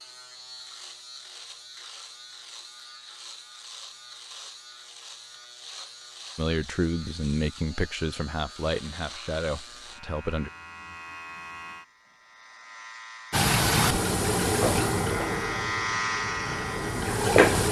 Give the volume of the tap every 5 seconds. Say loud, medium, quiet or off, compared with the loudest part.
off, off, loud, loud.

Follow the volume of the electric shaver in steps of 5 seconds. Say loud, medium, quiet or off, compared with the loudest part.
quiet, quiet, quiet, loud.